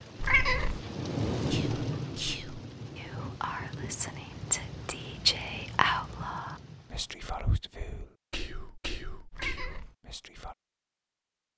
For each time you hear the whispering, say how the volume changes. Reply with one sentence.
You can hear the whispering from 1.5 to 10.6 s, getting louder then quieter.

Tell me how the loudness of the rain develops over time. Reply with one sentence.
The loudness of the rain goes down.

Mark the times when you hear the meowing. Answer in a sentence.
The meowing can be heard from 0.2 to 0.8 s and from 9.3 to 9.9 s.